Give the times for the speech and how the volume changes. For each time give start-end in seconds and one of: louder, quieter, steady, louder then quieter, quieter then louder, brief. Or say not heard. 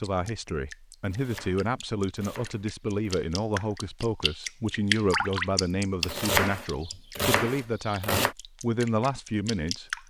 0.0-10.0 steady.